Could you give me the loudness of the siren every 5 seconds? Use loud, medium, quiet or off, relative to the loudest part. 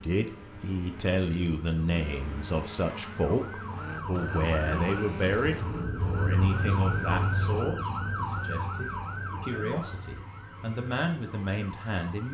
medium, loud, quiet.